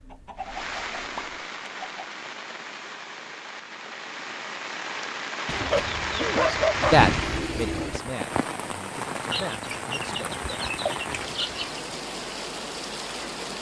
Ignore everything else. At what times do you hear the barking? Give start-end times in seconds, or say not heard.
5.7-7.1.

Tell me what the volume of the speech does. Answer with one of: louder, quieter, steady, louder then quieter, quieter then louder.
quieter then louder.